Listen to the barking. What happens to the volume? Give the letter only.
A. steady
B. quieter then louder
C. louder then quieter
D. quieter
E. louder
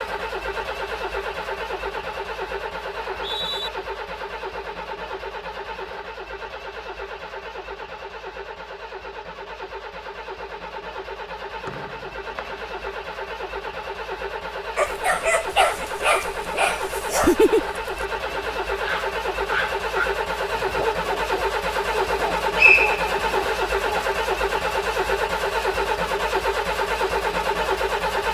D.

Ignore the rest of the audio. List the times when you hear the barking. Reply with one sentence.
The barking can be heard from 14.8 to 24.1 s.